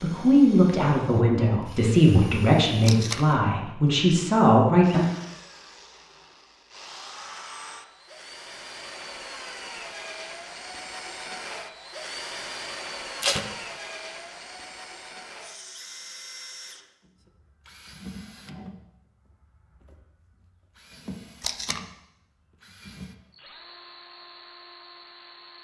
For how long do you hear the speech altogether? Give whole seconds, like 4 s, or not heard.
5 s.